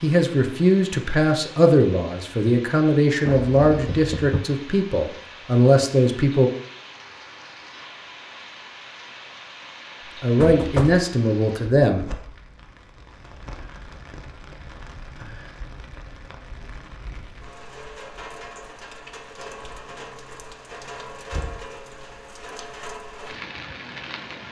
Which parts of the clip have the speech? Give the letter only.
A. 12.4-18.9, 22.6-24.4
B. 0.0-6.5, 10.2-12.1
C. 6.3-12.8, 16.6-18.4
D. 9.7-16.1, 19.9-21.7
B.